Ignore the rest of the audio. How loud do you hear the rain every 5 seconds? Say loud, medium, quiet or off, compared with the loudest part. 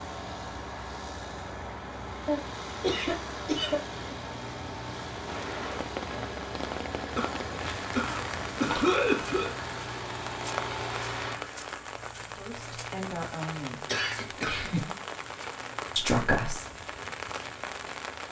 off, loud, loud, loud.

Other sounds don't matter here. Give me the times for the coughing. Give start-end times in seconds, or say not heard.
2.2-4.0, 7.2-9.5, 13.8-14.9.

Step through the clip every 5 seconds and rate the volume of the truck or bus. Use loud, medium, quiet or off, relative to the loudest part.
loud, loud, loud, quiet.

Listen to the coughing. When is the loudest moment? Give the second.
9 s.